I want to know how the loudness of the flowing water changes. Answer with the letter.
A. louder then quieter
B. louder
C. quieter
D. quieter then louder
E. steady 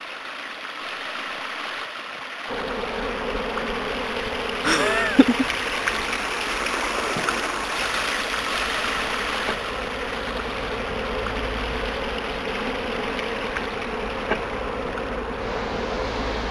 A.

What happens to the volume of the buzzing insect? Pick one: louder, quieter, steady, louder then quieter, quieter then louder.
quieter then louder.